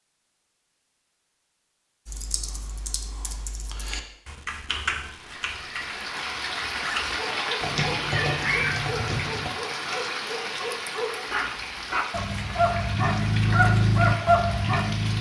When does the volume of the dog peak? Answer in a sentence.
The loudest moment of the dog is at 14 seconds.